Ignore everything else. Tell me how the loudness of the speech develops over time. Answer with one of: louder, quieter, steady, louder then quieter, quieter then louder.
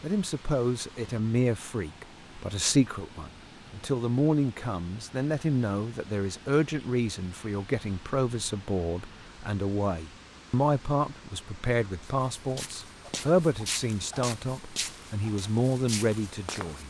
steady.